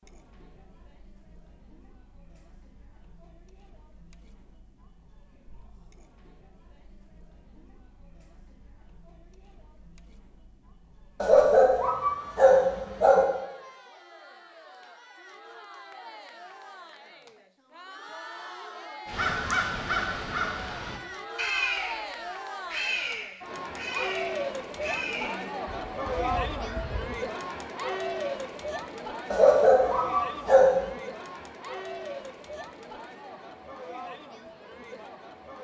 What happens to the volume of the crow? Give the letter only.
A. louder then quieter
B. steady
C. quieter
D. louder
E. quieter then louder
C.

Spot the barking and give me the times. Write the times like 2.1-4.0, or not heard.
11.2-13.2, 29.3-30.9.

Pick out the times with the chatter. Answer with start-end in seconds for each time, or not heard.
0.0-35.5.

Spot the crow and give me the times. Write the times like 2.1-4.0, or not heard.
19.1-27.1.